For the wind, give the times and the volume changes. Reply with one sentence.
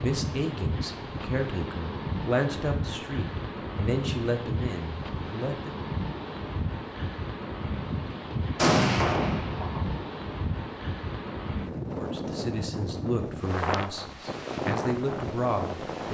You can hear the wind from 0.0 to 16.0 s, at a steady volume.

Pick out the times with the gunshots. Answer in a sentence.
The gunshots can be heard from 8.6 to 10.0 s.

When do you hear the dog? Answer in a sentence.
You can't hear the dog here.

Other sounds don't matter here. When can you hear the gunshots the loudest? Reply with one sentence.
The volume of the gunshots peaks at 9 seconds.